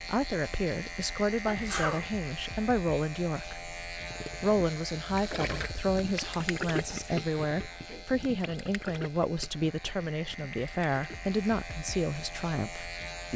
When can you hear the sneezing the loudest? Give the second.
2 s.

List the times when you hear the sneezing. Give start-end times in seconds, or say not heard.
1.4-2.1, 6.9-8.1.